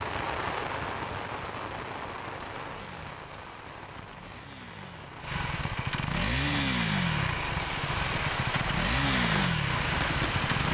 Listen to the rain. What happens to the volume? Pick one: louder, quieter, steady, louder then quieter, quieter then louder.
quieter then louder.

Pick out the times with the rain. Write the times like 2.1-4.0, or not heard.
0.0-10.7.